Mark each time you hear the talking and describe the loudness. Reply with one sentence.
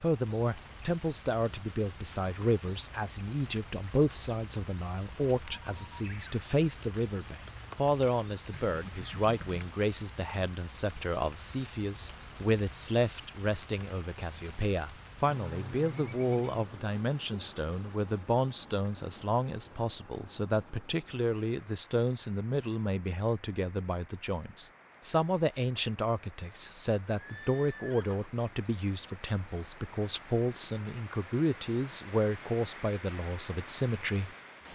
The talking can be heard from 0.0 to 34.7 s, at a steady volume.